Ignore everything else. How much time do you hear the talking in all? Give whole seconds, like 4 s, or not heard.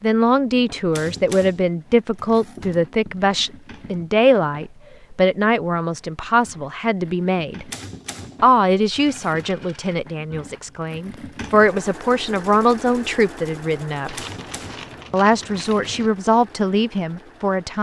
16 s.